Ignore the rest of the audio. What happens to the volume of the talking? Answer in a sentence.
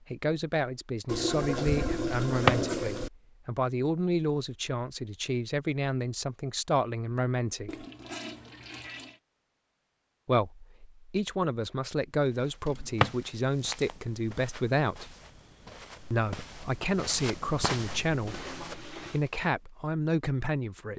The loudness of the talking stays about the same.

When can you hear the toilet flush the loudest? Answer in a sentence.
The loudest moment of the toilet flush is at 2 seconds.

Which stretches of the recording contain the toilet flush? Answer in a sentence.
You can hear the toilet flush from 1.1 to 3.1 s, from 7.7 to 9.2 s and from 18.2 to 19.2 s.